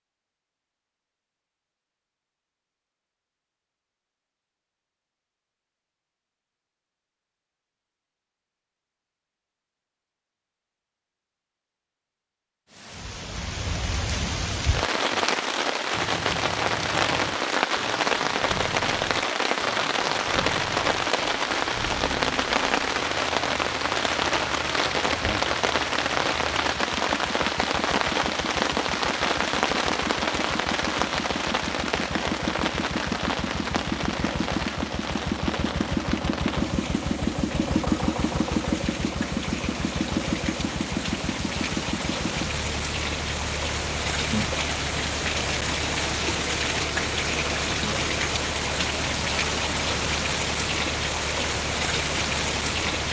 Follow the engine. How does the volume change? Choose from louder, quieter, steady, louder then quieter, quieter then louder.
louder then quieter.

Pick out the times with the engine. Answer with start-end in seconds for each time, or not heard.
15.9-53.0.